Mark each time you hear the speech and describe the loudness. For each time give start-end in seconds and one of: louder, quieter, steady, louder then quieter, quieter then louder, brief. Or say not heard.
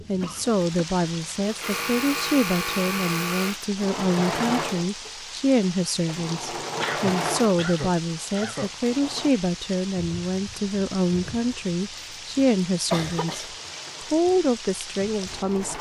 0.1-13.4 steady
14.1-15.7 brief.